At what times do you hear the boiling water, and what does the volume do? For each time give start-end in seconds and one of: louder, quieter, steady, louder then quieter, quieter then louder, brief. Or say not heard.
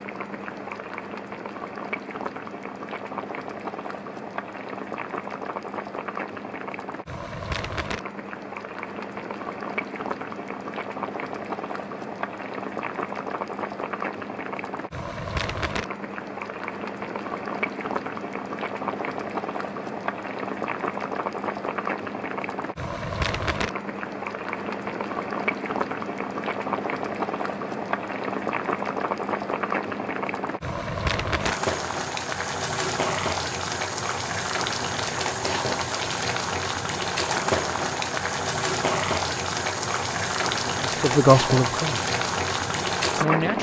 0.0-43.5 louder.